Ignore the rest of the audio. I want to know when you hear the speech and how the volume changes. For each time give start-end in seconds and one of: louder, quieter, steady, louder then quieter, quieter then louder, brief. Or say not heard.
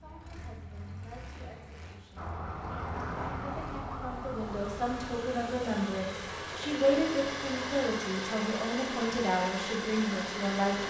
0.0-10.8 louder.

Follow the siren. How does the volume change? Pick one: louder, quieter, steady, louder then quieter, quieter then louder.
quieter.